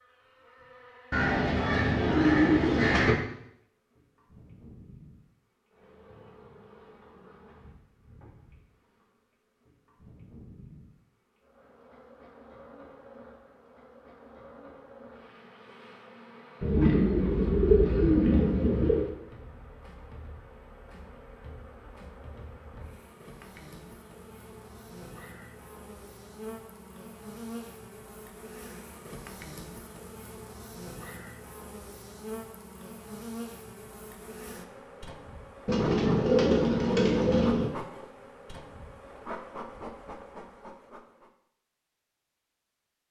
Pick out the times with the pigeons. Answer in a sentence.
The pigeons can be heard from 1.1 to 3.1 s, from 16.6 to 19.1 s and from 35.6 to 37.7 s.